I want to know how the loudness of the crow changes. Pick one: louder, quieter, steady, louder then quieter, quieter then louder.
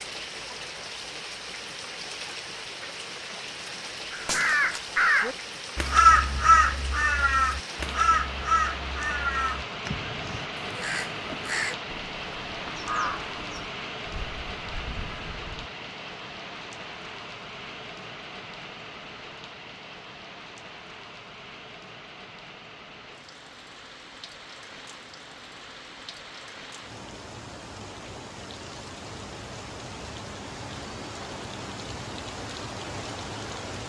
quieter.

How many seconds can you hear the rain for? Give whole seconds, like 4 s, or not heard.
34 s.